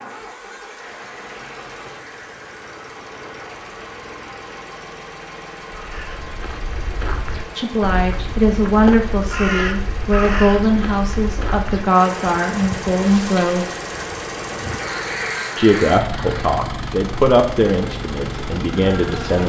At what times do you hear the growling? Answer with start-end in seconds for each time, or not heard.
not heard.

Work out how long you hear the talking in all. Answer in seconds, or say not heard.
10 s.